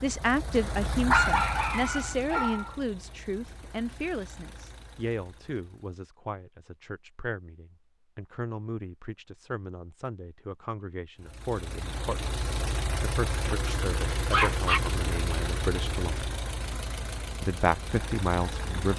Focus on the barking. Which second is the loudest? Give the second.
1 s.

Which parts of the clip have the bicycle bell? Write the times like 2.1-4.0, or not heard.
not heard.